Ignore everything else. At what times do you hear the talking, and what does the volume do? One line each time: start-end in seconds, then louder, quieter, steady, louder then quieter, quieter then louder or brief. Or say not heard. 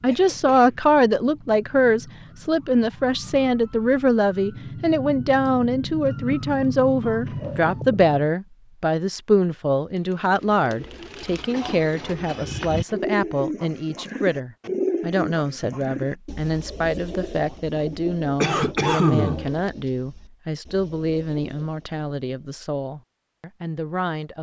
0.0-24.3 quieter.